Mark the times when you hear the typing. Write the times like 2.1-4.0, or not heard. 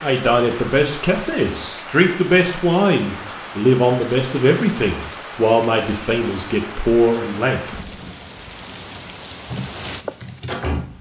9.5-10.9.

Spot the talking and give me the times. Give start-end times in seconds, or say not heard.
0.0-7.8.